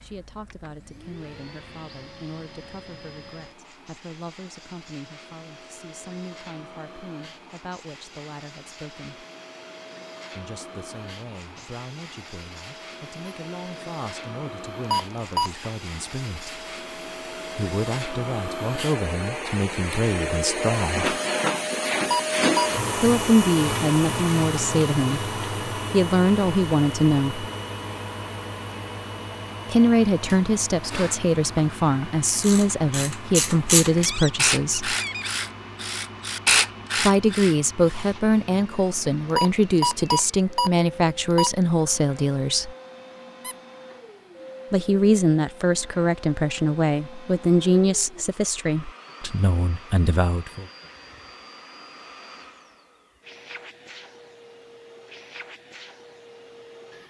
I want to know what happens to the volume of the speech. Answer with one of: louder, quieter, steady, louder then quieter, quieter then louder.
louder.